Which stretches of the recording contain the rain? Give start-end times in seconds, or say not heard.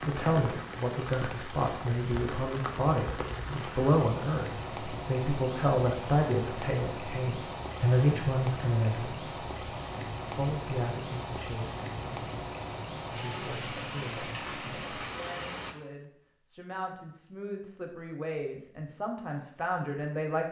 0.0-15.8.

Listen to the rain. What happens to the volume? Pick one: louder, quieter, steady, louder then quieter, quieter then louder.
steady.